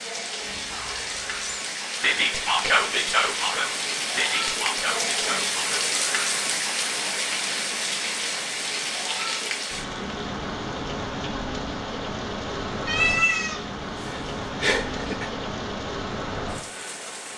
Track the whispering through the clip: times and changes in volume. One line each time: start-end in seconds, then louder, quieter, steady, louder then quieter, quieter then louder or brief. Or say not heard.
0.4-5.8 louder then quieter.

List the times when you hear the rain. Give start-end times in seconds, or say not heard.
0.0-17.3.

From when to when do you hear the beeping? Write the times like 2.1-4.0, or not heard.
not heard.